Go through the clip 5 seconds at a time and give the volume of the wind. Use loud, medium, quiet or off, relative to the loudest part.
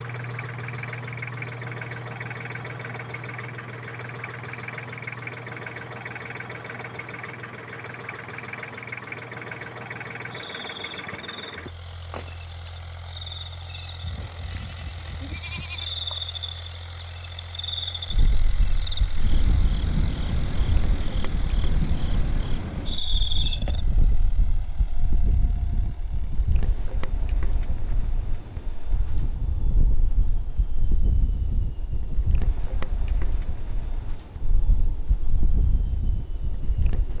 off, off, off, loud, loud, loud, loud, loud.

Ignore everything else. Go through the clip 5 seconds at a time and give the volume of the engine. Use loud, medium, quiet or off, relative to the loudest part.
loud, loud, medium, medium, medium, quiet, quiet, quiet.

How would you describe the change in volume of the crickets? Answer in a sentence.
The loudness of the crickets goes down, then up.